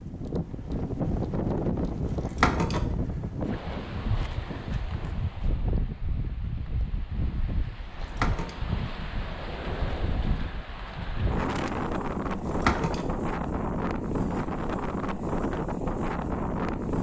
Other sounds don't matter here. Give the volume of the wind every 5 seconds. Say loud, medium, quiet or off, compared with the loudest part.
loud, medium, loud, loud.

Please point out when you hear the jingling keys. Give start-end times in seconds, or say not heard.
2.0-3.0, 7.8-8.6, 12.3-13.1.